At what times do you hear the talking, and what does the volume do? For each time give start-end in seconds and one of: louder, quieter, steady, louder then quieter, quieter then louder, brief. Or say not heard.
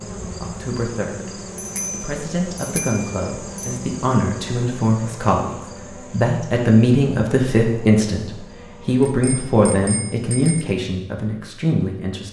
0.0-12.2 louder.